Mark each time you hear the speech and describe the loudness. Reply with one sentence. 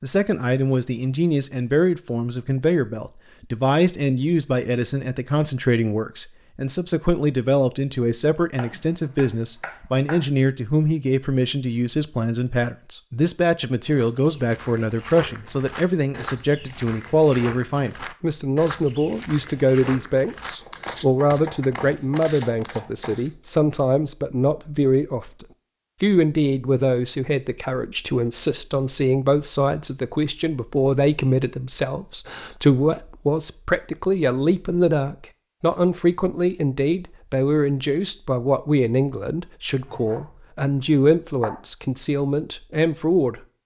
The speech can be heard from 0.0 to 43.4 s, at a steady volume.